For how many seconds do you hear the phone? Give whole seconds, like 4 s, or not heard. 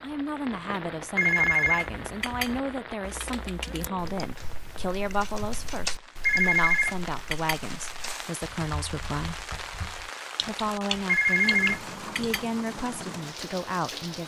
4 s.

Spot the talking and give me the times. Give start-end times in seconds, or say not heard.
0.0-9.4, 10.4-14.2.